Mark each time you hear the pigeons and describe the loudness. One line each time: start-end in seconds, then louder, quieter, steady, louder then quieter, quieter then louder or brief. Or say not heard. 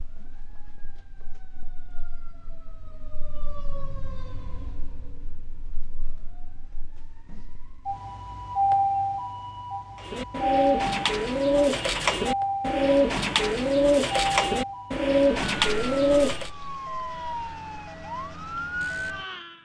9.9-16.5 steady.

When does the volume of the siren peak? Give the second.
9 s.